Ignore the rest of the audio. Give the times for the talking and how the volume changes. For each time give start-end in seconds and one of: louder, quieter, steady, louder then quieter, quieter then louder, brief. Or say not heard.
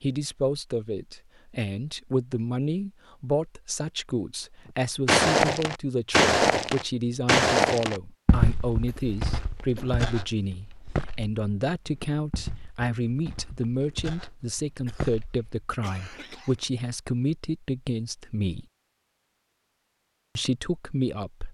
0.0-18.6 steady
20.4-21.4 brief.